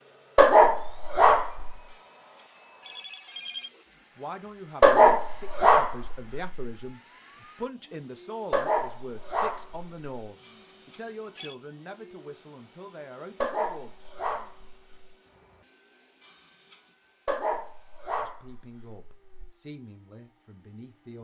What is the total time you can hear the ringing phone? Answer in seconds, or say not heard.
4 s.